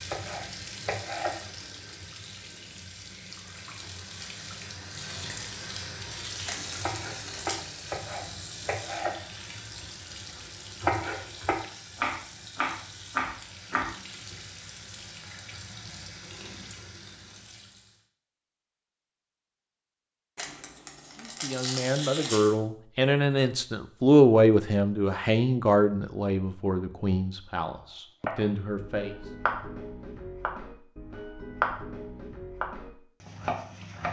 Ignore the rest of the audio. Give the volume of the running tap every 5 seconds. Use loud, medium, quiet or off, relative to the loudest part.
loud, loud, medium, medium, off, off, off.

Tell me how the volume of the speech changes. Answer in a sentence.
The loudness of the speech goes up, then down.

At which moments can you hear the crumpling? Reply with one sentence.
The crumpling can be heard from 6.5 to 7.6 s and from 20.4 to 22.6 s.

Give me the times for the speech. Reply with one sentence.
You can hear the speech from 21.2 to 29.1 s.